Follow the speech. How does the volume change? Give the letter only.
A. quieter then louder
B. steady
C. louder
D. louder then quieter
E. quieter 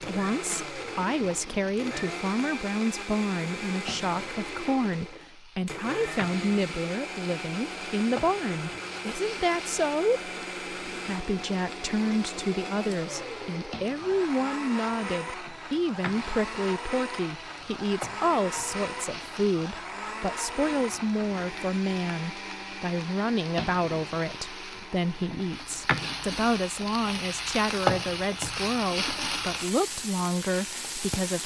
B.